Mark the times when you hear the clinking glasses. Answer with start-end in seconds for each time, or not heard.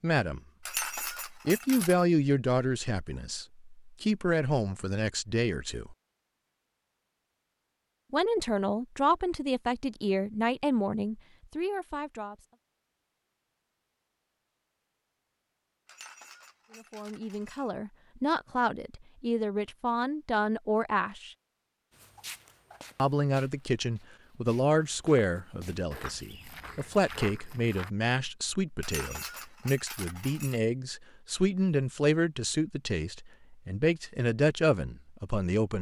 0.7-2.0, 15.8-17.7, 28.8-30.6.